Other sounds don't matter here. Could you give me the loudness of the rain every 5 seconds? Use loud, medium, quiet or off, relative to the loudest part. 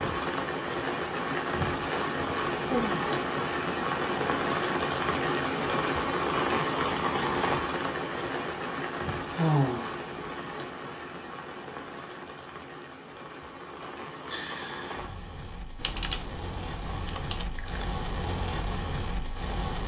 loud, loud, medium, medium.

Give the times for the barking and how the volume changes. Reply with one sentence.
The barking can't be heard in this clip.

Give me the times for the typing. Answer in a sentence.
The typing can be heard from 15.8 to 17.9 s.